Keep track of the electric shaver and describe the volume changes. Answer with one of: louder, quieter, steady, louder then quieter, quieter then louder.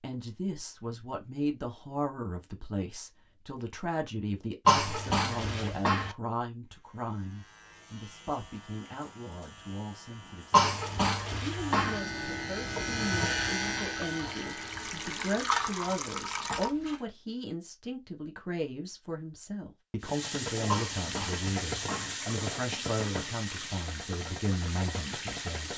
louder then quieter.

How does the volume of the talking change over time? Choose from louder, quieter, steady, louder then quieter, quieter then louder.
steady.